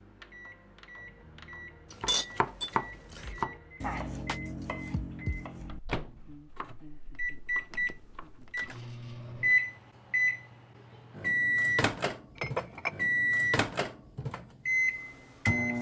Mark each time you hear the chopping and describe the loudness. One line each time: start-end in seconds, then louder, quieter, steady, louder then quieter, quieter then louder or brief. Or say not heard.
2.0-8.6 quieter.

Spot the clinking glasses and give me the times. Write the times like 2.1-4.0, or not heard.
1.9-3.4, 12.3-12.9.